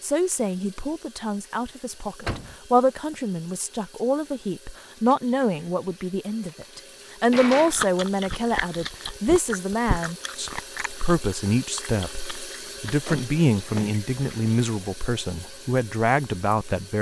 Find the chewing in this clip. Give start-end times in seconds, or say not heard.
7.7-13.1.